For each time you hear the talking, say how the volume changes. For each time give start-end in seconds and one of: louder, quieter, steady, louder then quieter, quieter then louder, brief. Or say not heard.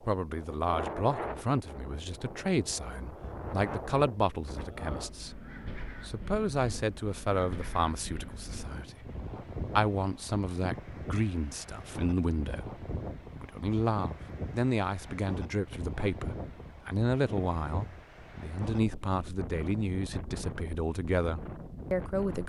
0.0-22.4 steady.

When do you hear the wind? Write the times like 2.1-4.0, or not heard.
0.0-22.4.